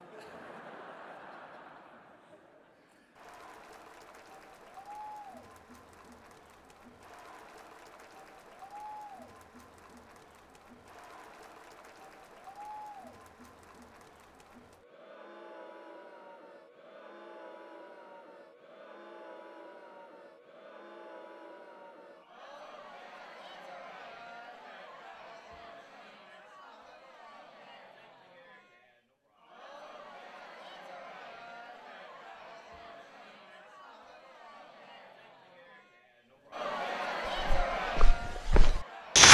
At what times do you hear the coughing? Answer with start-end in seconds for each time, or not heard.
not heard.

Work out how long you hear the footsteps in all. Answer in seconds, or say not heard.
2 s.